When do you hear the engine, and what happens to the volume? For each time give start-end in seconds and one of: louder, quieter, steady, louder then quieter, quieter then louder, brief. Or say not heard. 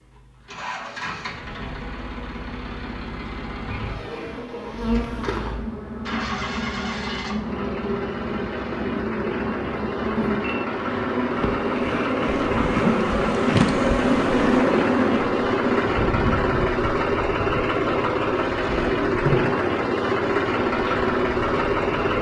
0.0-22.1 louder.